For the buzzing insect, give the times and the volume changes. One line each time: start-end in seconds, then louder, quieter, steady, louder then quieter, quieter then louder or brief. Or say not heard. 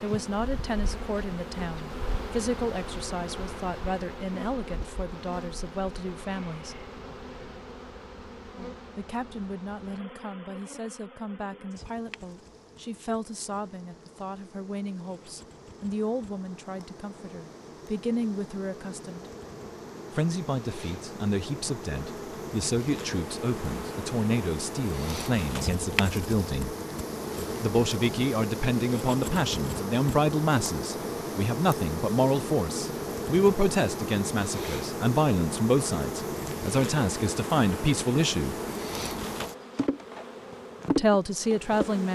0.0-42.1 quieter then louder.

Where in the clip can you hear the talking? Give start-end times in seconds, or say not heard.
0.0-6.8, 8.9-19.2, 20.1-26.8, 27.6-38.5, 40.9-42.1.